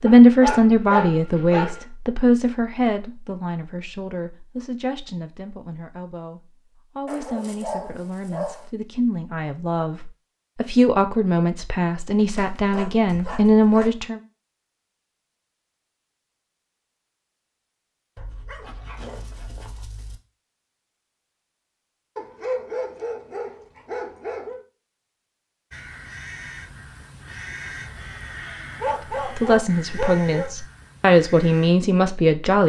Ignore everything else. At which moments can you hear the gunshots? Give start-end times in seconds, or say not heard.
not heard.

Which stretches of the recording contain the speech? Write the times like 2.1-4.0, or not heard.
0.0-14.2, 29.4-32.6.